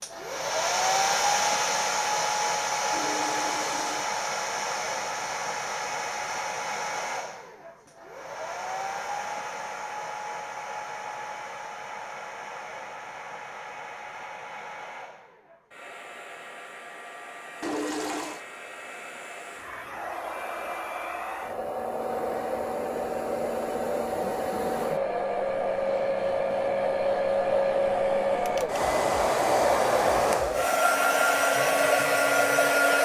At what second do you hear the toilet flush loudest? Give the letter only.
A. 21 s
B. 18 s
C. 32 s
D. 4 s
B.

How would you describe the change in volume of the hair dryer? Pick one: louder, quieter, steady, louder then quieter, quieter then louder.
quieter then louder.